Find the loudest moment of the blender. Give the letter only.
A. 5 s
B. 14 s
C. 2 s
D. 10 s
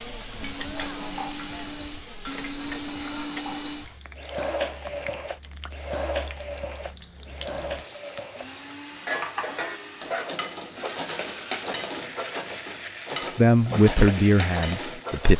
A.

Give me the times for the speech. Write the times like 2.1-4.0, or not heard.
13.2-15.3.